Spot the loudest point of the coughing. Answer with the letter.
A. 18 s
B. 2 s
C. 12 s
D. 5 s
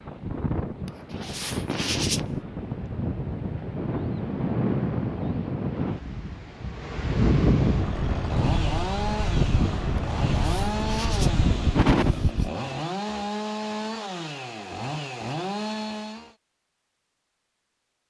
C.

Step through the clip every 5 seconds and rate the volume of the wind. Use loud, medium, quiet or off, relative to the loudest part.
loud, loud, loud, off.